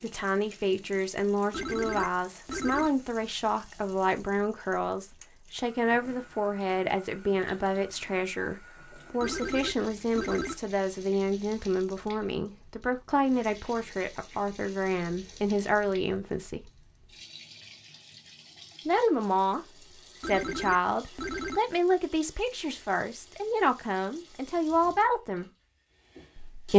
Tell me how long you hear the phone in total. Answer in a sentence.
You can hear the phone for 4 seconds altogether.